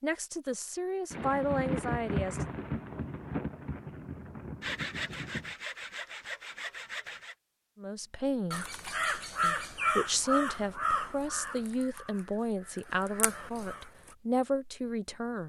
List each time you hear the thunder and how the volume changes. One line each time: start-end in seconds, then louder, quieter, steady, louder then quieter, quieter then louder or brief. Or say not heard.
1.1-5.5 quieter.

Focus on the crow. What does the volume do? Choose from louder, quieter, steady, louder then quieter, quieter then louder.
quieter then louder.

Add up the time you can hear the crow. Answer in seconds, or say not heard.
6 s.